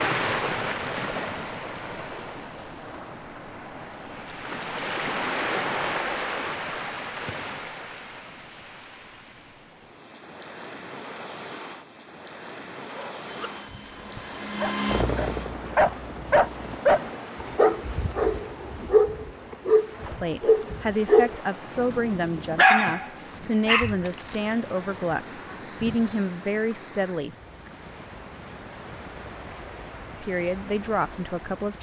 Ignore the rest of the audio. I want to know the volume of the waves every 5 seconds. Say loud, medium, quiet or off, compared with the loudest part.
loud, loud, medium, medium, medium, medium, medium.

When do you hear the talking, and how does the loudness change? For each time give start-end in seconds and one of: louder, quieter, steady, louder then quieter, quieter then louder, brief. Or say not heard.
20.0-27.4 steady
30.2-31.7 brief.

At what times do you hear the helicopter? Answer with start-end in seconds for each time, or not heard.
13.2-16.8.